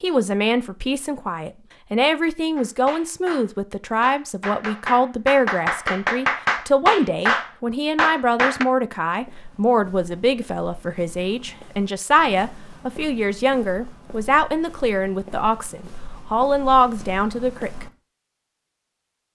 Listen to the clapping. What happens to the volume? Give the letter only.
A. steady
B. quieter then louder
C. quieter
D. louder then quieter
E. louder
E.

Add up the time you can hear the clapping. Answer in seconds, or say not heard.
6 s.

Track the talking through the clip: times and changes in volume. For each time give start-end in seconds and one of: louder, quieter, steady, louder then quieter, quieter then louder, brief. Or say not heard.
0.0-17.9 steady.